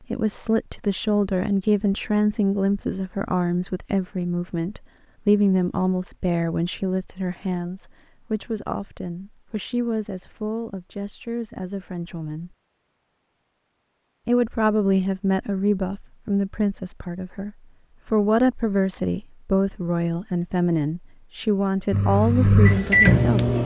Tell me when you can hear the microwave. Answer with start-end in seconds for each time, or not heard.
21.9-23.6.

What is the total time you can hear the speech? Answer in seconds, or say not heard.
22 s.